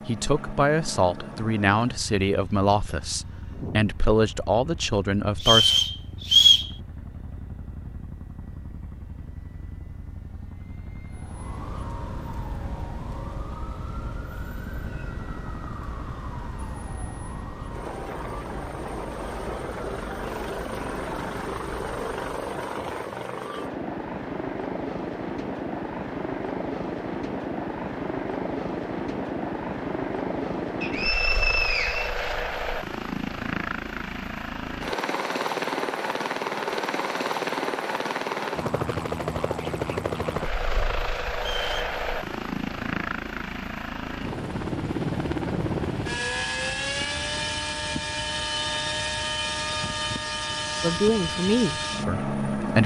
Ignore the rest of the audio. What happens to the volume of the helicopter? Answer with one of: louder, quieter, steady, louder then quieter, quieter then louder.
louder.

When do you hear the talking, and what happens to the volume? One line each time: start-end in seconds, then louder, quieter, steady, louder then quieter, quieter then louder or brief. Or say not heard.
0.1-5.8 steady
50.8-52.8 brief.